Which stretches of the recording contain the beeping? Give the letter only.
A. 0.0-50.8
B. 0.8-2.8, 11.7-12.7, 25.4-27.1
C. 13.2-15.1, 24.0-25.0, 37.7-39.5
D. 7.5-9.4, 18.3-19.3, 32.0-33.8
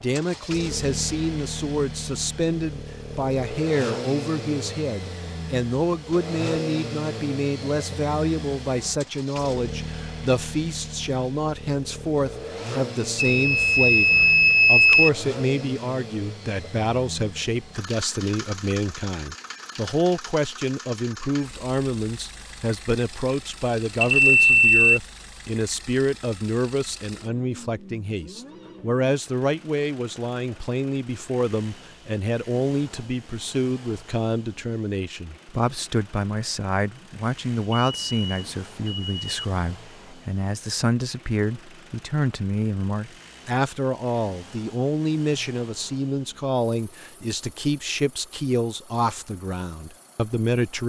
C.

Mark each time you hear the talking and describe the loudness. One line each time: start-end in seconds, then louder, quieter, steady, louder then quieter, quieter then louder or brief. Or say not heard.
0.0-50.8 steady.